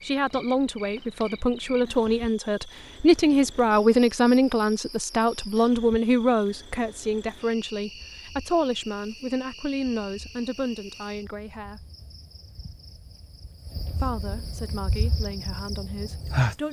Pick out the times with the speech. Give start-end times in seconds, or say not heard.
0.0-11.8, 14.0-16.6.